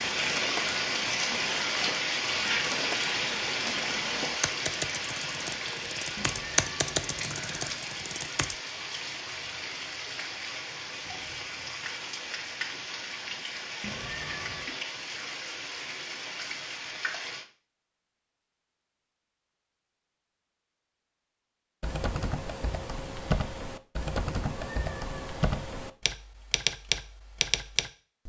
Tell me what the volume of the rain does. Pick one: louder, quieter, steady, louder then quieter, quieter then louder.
quieter.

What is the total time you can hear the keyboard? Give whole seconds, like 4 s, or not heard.
15 s.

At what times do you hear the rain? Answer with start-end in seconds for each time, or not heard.
0.0-17.4.